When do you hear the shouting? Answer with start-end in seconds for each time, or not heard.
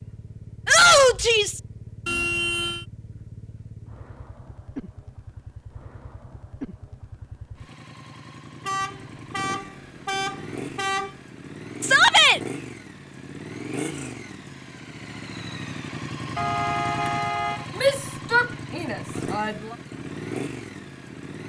0.7-1.6, 11.8-12.4, 17.8-19.8.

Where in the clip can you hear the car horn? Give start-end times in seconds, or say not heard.
2.0-2.9, 8.7-11.2, 16.4-17.6.